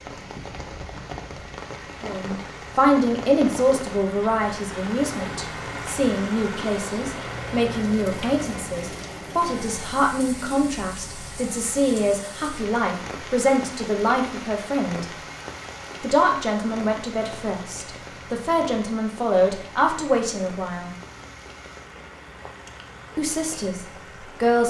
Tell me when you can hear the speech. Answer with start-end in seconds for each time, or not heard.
2.0-15.1, 16.0-20.9, 23.1-24.6.